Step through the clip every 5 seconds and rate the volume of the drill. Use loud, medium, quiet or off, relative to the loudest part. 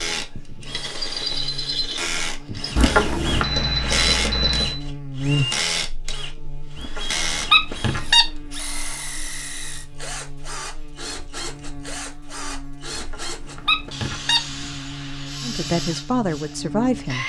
loud, loud, medium, medium.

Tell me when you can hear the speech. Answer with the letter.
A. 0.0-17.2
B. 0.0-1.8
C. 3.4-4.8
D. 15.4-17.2
D.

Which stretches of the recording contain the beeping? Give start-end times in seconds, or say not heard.
3.4-4.8.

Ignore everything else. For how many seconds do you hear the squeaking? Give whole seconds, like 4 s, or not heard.
4 s.